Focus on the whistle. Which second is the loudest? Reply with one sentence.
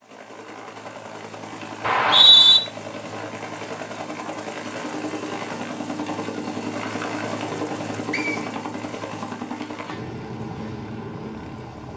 The volume of the whistle peaks at 2 seconds.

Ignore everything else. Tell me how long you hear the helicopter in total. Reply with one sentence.
You can hear the helicopter for 12 seconds altogether.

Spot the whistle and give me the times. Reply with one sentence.
You can hear the whistle from 1.8 to 2.6 s and from 8.1 to 8.5 s.